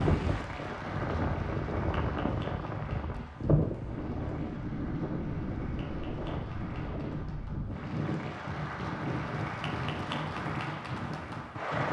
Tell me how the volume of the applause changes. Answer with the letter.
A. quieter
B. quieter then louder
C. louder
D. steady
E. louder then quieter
B.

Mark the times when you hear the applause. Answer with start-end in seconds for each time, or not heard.
0.0-11.8.